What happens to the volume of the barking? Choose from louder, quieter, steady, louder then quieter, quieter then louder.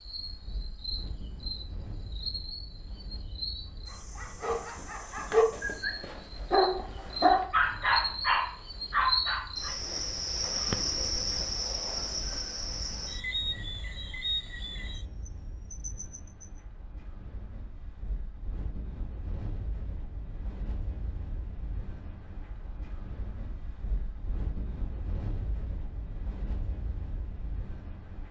louder.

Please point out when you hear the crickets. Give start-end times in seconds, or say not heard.
0.0-16.6.